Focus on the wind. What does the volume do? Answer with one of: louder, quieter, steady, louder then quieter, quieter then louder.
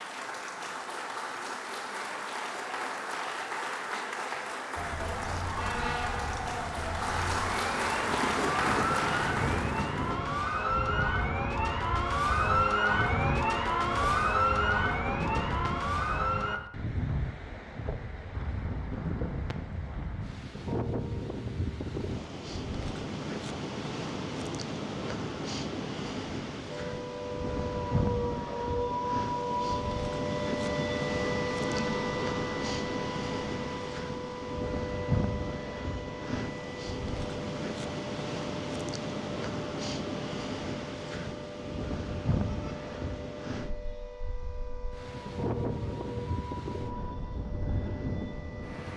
steady.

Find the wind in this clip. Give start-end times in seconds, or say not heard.
8.0-48.9.